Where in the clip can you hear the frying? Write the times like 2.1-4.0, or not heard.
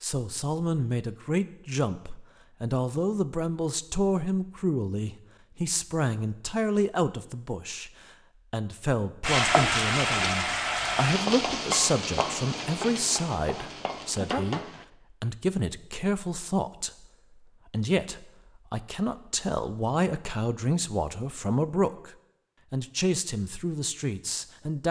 9.2-14.8.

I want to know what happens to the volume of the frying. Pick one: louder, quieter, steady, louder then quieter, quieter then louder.
quieter.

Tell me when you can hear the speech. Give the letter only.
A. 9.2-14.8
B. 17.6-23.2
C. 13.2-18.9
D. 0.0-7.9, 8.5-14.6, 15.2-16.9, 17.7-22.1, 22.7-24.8
D.